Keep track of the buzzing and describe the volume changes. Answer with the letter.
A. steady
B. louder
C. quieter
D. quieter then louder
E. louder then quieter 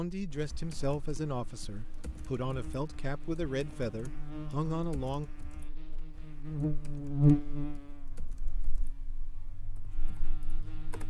E.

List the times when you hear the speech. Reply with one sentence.
You can hear the speech from 0.0 to 5.3 s.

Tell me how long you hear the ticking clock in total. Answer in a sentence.
The ticking clock can't be heard in this clip.